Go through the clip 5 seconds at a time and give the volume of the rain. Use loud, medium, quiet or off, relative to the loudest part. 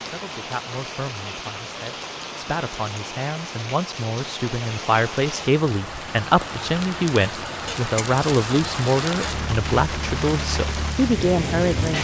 medium, loud, loud.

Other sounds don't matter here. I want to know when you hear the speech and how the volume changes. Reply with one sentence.
You can hear the speech from 0.0 to 11.9 s, getting louder.